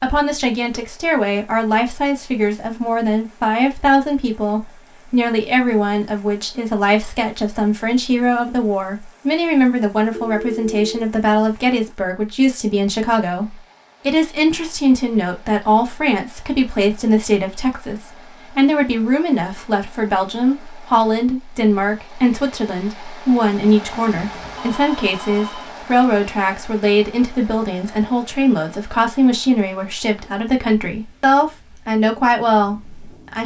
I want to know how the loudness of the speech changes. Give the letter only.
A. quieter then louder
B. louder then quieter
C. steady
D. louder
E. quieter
C.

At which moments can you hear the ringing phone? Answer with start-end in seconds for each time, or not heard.
10.1-11.1, 24.1-25.8.